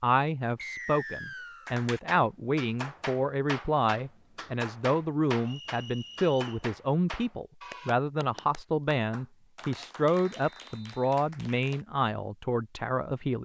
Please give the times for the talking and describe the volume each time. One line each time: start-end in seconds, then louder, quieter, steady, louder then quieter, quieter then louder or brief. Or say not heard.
0.0-13.4 steady.